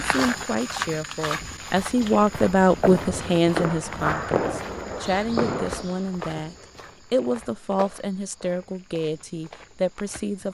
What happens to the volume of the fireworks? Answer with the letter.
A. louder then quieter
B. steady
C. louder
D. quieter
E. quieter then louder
C.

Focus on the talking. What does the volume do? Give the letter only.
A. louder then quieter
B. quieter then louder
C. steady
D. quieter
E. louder
A.